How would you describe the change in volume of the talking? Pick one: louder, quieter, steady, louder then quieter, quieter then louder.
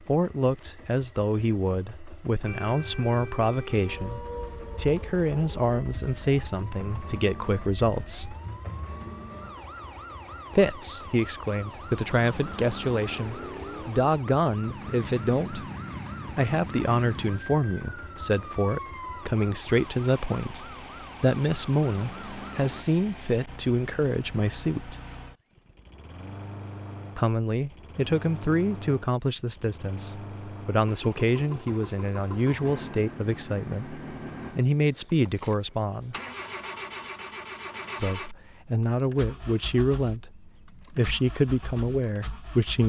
steady.